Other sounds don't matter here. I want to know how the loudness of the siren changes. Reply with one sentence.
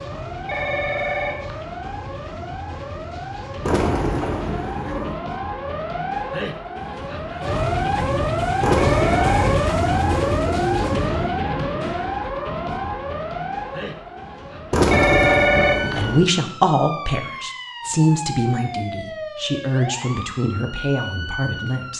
The loudness of the siren goes up, then down.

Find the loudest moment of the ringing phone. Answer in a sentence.
The loudest moment of the ringing phone is at 15 seconds.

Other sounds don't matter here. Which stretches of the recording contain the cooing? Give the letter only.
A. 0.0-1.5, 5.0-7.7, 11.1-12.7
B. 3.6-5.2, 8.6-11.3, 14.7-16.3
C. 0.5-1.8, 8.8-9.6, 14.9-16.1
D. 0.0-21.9
B.